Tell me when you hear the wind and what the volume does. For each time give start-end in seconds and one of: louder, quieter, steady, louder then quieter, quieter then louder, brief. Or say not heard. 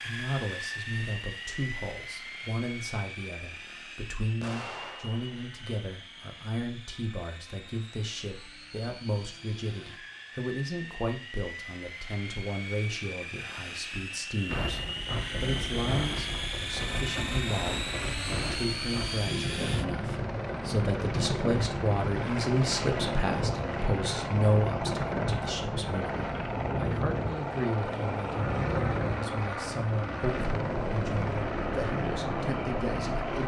14.4-33.4 steady.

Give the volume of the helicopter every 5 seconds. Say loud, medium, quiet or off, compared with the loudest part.
medium, quiet, medium, loud, loud, loud, loud.